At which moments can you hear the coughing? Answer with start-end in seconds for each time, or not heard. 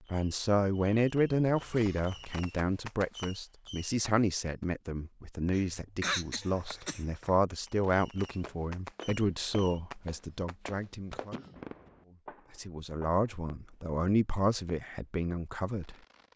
1.5-2.4, 5.5-7.1, 11.3-11.9.